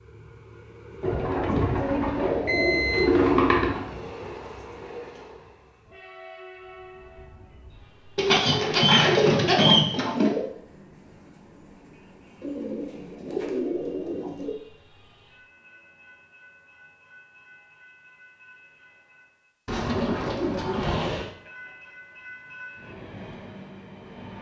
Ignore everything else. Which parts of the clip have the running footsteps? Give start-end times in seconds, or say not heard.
not heard.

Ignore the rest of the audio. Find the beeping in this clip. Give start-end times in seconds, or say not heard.
2.5-3.1.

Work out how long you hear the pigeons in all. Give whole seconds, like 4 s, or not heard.
9 s.